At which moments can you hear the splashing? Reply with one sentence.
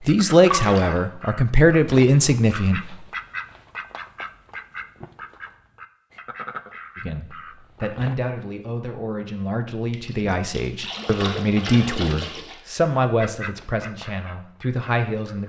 The splashing can be heard from 0.5 to 1.0 s and from 9.9 to 12.6 s.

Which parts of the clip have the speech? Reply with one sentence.
The speech can be heard from 0.1 to 2.9 s and from 7.0 to 15.4 s.